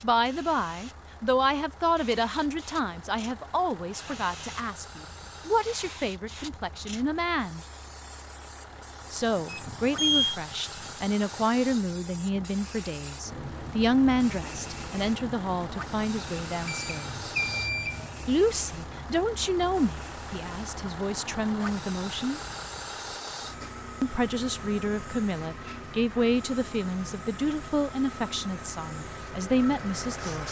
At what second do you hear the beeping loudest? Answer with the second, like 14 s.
10 s.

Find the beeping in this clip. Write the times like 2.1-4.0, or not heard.
9.4-10.3, 16.6-18.2.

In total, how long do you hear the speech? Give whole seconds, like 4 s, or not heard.
26 s.